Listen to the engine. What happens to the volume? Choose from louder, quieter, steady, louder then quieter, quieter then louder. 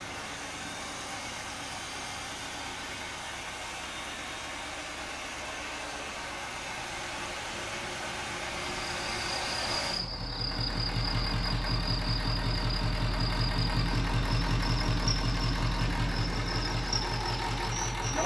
louder.